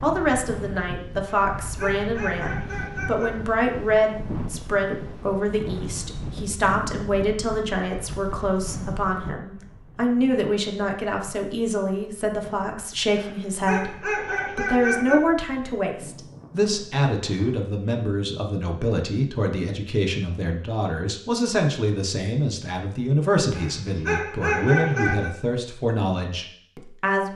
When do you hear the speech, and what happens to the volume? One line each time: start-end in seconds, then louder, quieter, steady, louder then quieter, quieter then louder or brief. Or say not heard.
0.0-27.3 steady.